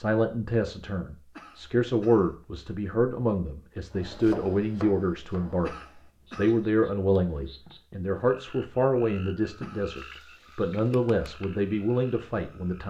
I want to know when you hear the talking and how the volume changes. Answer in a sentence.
You can hear the talking from 0.0 to 12.8 s, at a steady volume.